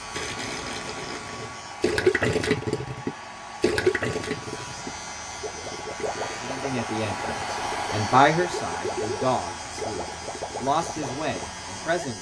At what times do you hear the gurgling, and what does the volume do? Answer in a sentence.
You can hear the gurgling from 0.1 to 11.5 s, getting quieter.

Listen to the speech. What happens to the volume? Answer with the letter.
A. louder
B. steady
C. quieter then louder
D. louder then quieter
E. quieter
D.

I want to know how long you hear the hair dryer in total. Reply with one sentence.
The hair dryer can be heard for 12 seconds in total.